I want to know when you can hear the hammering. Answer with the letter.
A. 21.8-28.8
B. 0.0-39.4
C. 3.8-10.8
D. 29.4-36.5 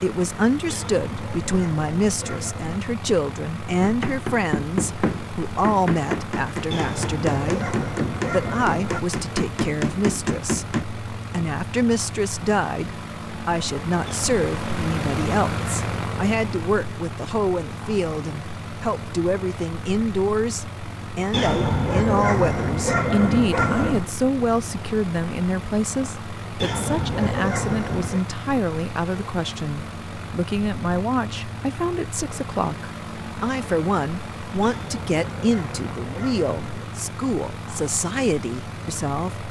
C.